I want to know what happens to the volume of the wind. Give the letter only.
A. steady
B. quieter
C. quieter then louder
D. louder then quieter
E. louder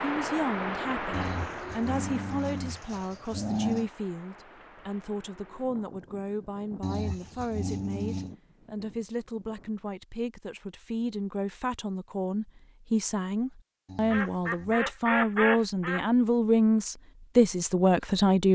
B.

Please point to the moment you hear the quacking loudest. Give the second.
15 s.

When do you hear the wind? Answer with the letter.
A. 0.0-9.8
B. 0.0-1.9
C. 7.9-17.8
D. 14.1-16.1
A.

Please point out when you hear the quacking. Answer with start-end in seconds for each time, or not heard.
14.1-16.1.